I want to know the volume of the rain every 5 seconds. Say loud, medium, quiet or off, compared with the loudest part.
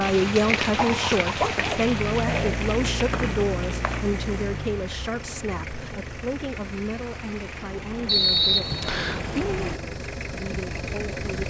loud, medium, off.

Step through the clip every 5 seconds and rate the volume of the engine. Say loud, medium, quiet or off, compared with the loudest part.
loud, medium, loud.